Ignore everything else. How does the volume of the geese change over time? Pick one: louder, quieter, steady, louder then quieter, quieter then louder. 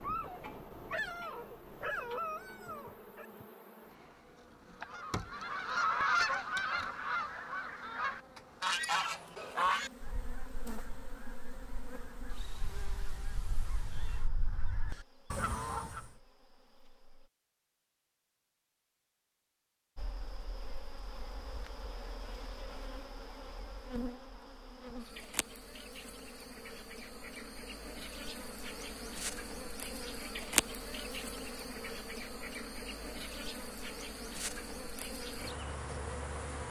quieter then louder.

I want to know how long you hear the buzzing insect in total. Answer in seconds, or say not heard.
34 s.